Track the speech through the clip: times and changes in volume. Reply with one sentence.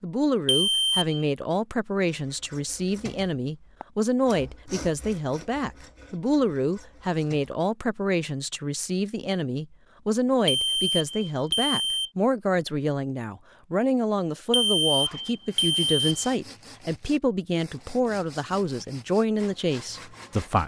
The speech can be heard from 0.0 to 20.6 s, at a steady volume.